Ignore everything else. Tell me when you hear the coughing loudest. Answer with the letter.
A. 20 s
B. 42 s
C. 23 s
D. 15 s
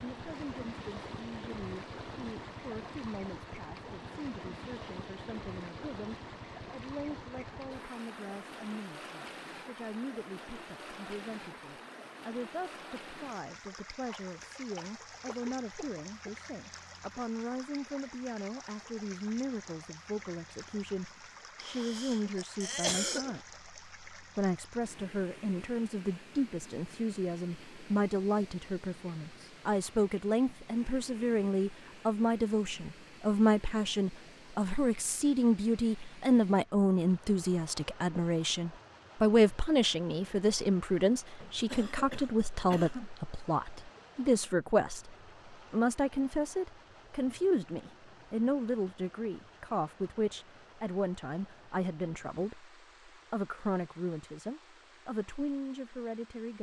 C.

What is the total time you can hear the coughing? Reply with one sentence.
The coughing can be heard for 6 seconds in total.